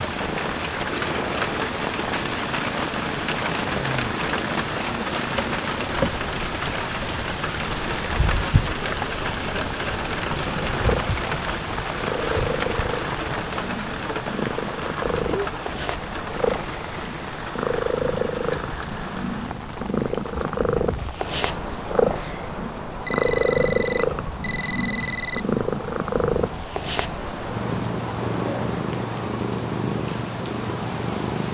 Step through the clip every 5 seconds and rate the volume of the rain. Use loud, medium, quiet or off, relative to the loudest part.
loud, loud, loud, medium, medium, medium, medium.